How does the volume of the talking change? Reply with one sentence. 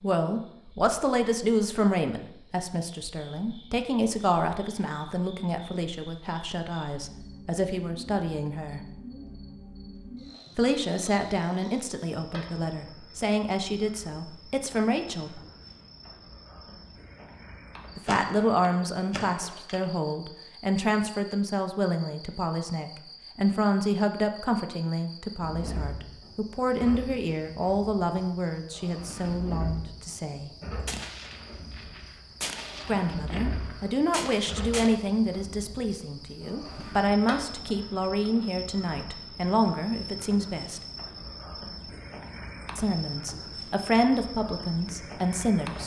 The volume of the talking stays about the same.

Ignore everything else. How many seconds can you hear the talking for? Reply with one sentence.
You can hear the talking for 37 seconds altogether.